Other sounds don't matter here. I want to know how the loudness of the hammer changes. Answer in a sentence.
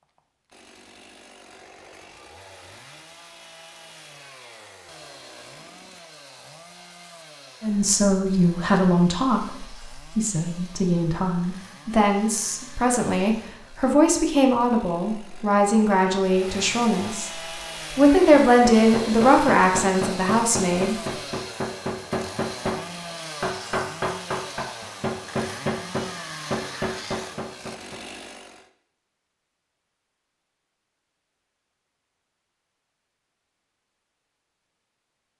The loudness of the hammer stays about the same.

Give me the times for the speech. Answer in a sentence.
You can hear the speech from 7.6 to 17.3 s and from 17.9 to 20.9 s.